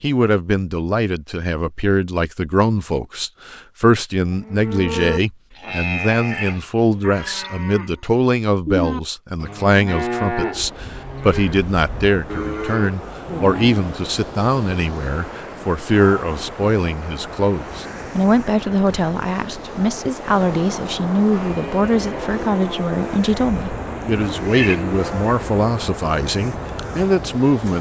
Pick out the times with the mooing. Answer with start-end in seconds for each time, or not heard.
4.3-14.1, 21.3-25.3.